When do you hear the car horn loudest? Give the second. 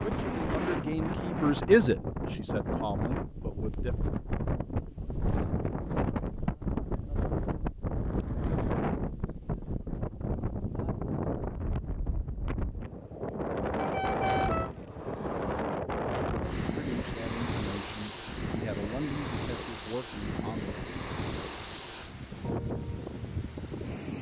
14 s.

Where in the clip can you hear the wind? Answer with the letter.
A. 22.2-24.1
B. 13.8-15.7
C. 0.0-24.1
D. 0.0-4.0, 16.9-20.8
C.